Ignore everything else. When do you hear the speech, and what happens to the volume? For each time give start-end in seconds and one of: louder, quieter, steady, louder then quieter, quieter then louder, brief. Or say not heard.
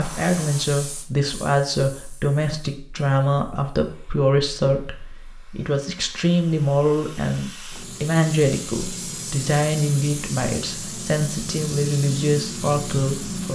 0.0-13.5 steady.